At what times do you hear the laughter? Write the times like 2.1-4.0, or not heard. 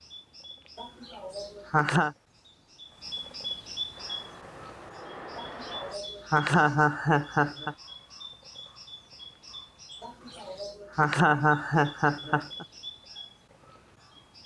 0.8-2.1, 5.3-7.8, 10.0-12.7.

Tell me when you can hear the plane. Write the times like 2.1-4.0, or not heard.
3.9-6.0.